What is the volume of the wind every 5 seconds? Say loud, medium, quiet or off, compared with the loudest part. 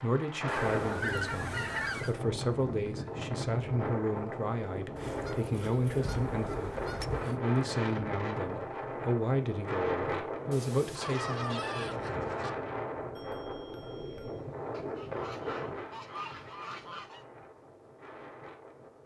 loud, loud, loud, medium.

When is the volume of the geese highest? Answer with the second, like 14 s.
1 s.